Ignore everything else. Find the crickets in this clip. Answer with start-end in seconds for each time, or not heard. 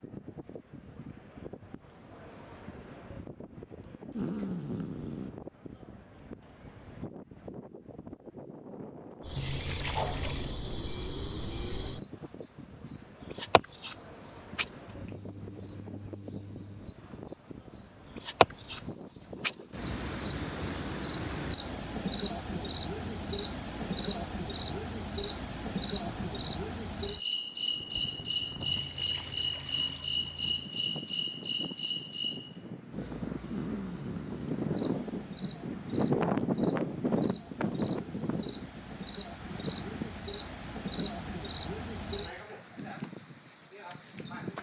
9.2-44.5.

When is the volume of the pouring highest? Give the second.
10 s.